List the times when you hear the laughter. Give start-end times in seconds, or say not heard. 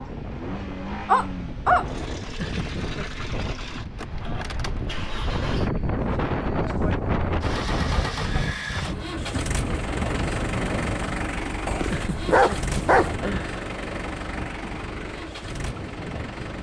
2.4-3.0, 11.9-13.6.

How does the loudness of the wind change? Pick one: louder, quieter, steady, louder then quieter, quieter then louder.
louder then quieter.